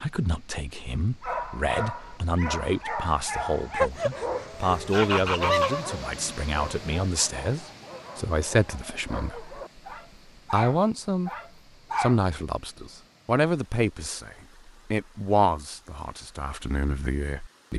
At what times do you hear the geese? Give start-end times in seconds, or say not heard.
3.7-5.8.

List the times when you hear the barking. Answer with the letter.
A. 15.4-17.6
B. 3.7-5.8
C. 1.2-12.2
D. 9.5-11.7
C.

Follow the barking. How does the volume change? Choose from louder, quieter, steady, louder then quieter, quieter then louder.
quieter then louder.